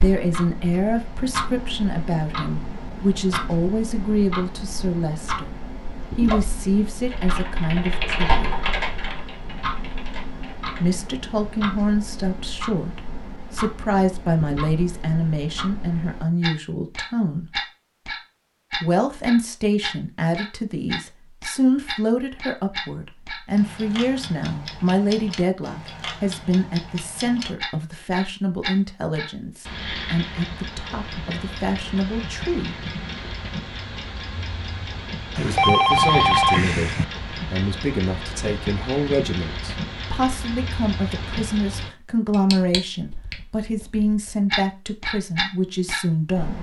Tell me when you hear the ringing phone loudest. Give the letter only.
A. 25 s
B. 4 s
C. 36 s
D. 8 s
C.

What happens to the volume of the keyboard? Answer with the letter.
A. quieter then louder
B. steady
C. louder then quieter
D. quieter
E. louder
C.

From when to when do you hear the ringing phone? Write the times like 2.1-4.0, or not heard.
35.4-37.0.